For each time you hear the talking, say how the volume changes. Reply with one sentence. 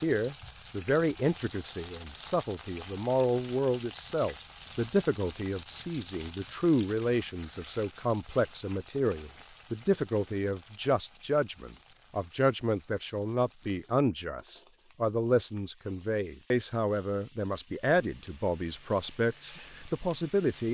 The talking can be heard from 0.0 to 20.6 s, at a steady volume.